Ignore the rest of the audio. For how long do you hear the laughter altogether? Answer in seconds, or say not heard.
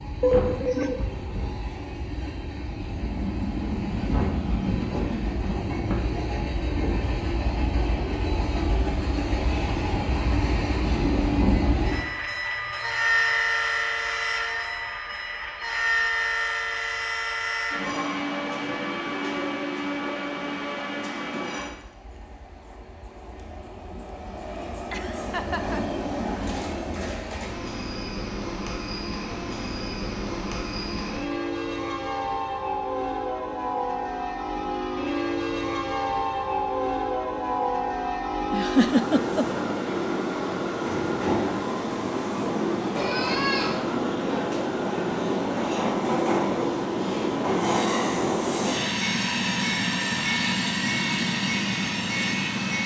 3 s.